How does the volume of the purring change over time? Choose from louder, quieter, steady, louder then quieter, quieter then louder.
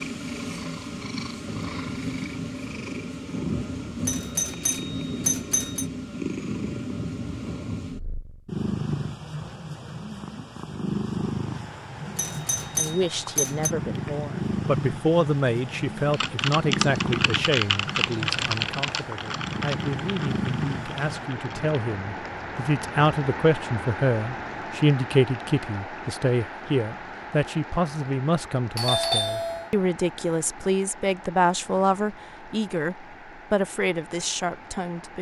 steady.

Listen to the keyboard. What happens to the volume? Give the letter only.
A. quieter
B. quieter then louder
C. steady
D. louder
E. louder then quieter
A.